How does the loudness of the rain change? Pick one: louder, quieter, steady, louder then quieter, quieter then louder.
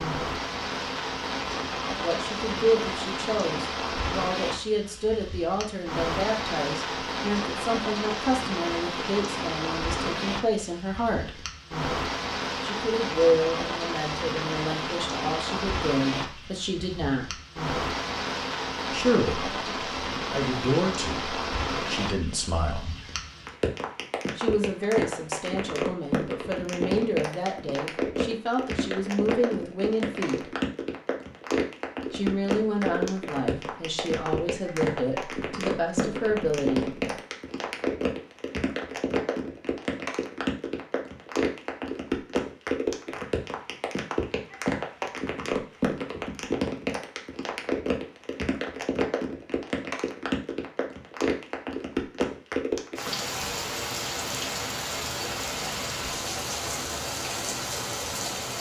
steady.